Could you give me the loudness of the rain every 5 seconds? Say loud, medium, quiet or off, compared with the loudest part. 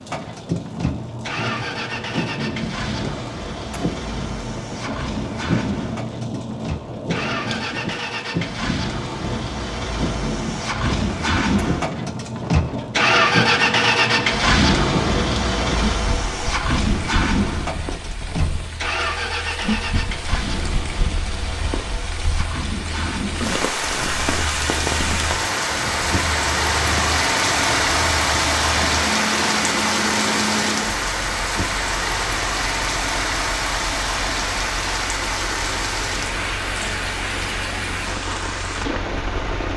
medium, medium, medium, medium, medium, loud, loud, medium.